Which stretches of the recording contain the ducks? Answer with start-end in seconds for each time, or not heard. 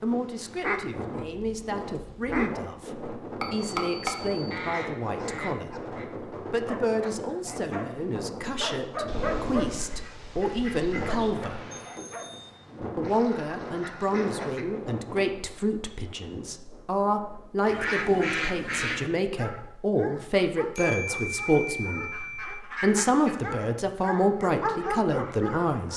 0.6-2.6, 4.5-6.0, 9.1-11.3, 13.0-14.7, 17.6-19.1, 22.1-23.6.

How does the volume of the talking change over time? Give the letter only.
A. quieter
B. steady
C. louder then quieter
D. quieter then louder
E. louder
E.